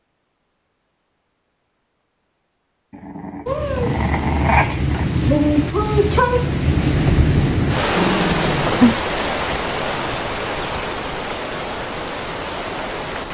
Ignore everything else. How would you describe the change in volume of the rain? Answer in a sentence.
The loudness of the rain goes down.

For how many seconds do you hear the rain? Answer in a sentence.
You can hear the rain for 10 seconds altogether.